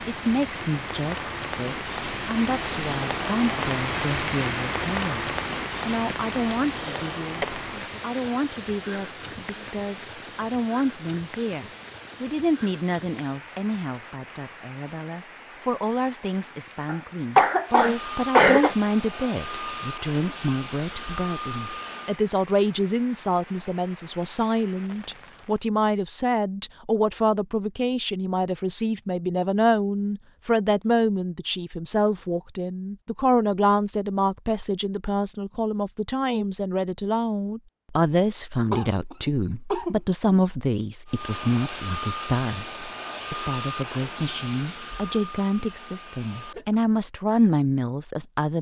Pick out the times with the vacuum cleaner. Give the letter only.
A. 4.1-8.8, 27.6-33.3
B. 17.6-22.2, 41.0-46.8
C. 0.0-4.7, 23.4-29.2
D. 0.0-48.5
B.